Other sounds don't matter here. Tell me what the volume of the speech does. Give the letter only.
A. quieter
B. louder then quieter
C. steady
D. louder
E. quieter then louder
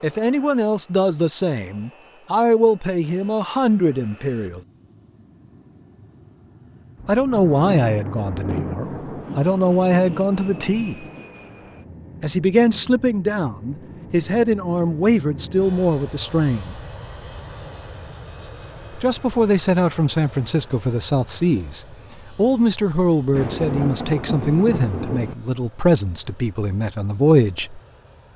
C.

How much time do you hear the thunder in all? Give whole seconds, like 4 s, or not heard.
6 s.